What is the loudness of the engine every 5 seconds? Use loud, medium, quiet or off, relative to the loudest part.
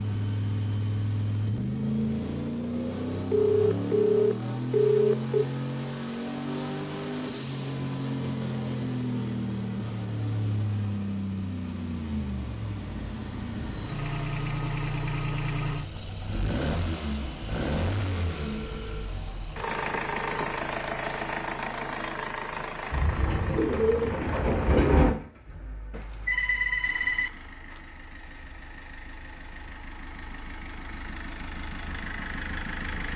loud, loud, loud, loud, loud, quiet, medium.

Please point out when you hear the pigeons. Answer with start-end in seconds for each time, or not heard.
22.9-25.1.